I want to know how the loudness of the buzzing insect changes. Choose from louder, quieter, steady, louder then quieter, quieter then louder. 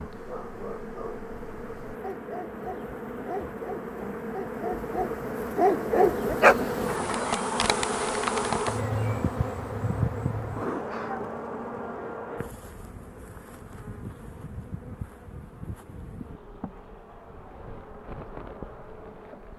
louder then quieter.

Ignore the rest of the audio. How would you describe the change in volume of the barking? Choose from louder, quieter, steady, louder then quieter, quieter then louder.
louder.